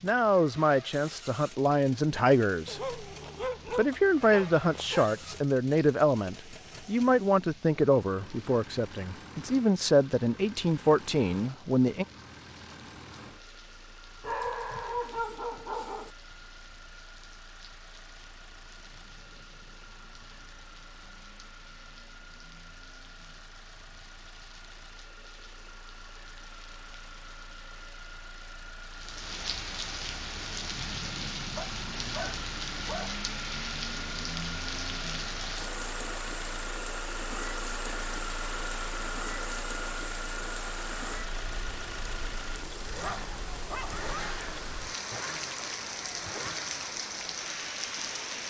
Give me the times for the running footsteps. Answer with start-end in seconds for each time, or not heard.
not heard.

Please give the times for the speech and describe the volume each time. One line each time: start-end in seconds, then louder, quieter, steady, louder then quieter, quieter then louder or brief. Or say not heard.
0.0-12.1 steady.